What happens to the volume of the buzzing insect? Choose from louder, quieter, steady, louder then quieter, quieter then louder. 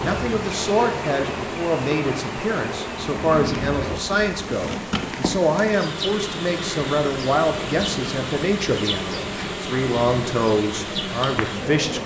steady.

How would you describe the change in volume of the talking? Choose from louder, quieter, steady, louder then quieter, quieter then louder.
steady.